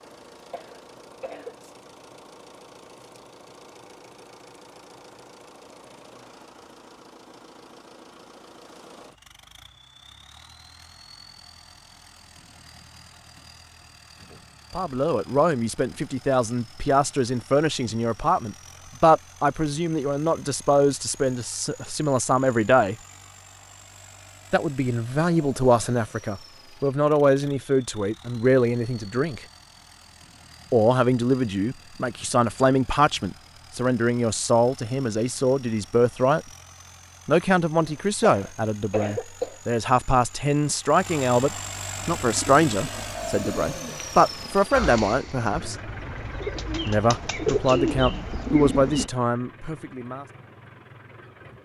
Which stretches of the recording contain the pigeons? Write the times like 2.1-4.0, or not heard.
42.2-49.1.